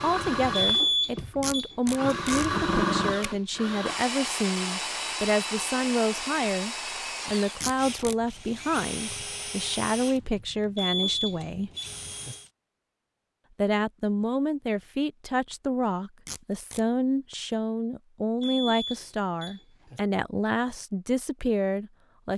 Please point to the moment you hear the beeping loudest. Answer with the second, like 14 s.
1 s.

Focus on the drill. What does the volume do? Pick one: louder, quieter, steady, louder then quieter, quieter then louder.
quieter.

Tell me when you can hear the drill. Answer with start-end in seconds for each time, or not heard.
0.0-12.5.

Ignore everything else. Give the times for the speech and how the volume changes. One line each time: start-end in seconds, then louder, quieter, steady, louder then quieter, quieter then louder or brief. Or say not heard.
0.0-11.7 steady
13.6-22.3 steady.